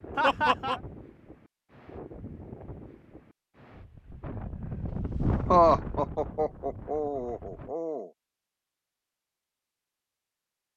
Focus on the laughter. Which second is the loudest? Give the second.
6 s.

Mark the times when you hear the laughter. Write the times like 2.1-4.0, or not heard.
0.1-0.8, 5.5-8.1.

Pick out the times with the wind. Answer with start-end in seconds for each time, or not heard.
0.0-7.8.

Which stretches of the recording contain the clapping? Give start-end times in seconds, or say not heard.
not heard.